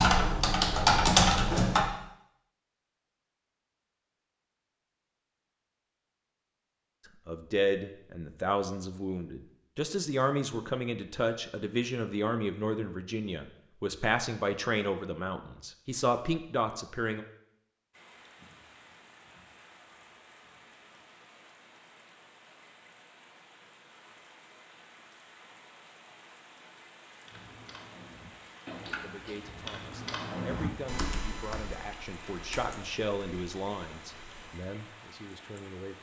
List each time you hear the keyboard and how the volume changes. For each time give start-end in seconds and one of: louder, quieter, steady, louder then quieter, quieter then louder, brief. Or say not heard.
0.0-1.9 brief
27.2-34.6 louder then quieter.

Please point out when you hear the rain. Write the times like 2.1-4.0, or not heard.
17.9-35.9.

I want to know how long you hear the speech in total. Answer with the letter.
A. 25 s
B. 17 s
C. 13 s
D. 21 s
B.